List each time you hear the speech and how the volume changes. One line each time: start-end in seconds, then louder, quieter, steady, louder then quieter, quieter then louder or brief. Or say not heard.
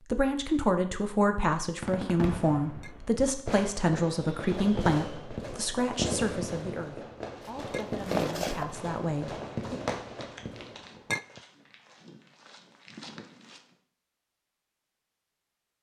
0.1-9.8 quieter.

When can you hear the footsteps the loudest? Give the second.
8 s.